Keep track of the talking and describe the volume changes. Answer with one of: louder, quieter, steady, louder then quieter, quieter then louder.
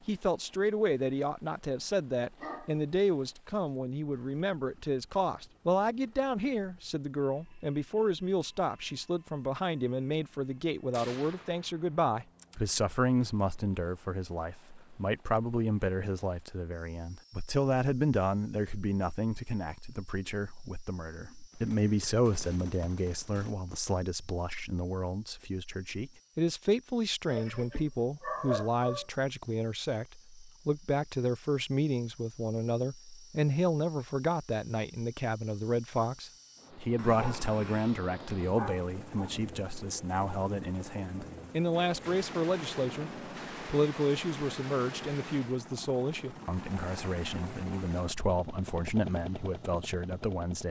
steady.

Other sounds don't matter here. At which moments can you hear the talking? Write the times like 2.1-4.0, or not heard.
0.1-50.6.